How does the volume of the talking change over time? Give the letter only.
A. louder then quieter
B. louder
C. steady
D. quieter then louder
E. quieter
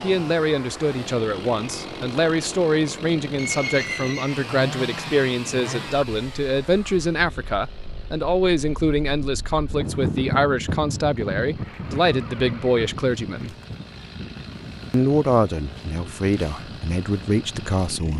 C.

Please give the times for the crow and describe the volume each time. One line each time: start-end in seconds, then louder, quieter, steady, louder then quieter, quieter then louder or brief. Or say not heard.
not heard.